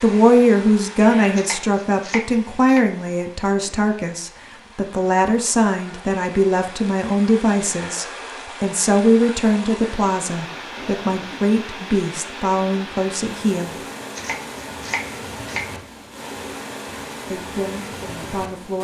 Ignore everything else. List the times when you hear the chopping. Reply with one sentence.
You can hear the chopping from 1.4 to 2.9 s and from 14.2 to 15.7 s.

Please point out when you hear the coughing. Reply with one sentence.
The coughing can't be heard in this clip.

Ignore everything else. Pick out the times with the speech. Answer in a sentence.
The speech can be heard from 0.0 to 13.8 s and from 17.3 to 18.7 s.